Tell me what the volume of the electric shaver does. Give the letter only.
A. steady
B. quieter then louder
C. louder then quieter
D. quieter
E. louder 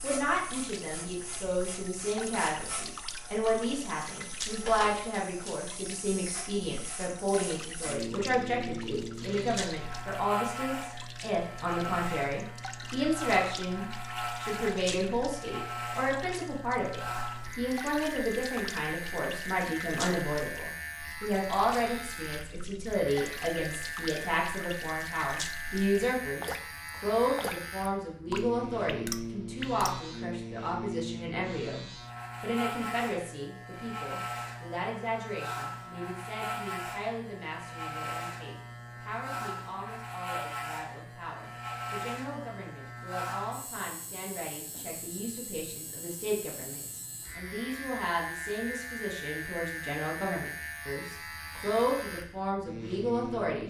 A.